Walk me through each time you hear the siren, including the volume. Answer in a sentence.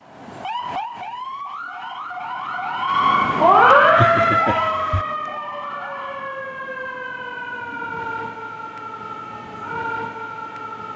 The siren can be heard from 0.0 to 10.9 s, getting louder then quieter.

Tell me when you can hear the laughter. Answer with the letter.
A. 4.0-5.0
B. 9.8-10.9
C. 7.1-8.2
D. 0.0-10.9
A.